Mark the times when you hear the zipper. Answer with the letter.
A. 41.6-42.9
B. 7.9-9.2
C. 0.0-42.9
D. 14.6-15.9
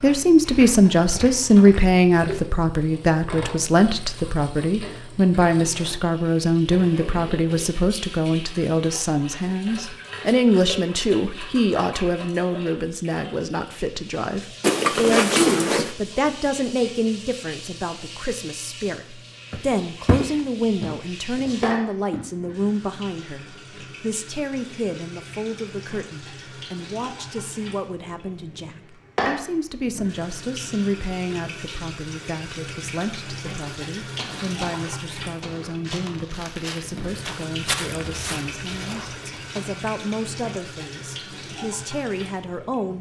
D.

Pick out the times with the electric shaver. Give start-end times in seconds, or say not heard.
not heard.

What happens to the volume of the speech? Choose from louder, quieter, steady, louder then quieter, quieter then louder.
quieter.